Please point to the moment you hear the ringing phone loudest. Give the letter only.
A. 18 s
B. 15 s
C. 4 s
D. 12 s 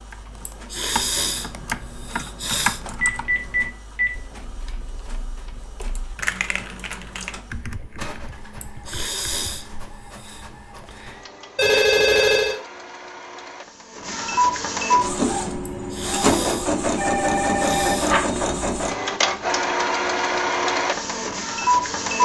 D.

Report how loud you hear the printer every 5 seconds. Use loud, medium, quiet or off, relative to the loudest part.
quiet, quiet, medium, loud, loud.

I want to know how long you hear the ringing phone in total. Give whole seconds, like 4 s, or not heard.
4 s.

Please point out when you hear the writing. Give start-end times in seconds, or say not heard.
not heard.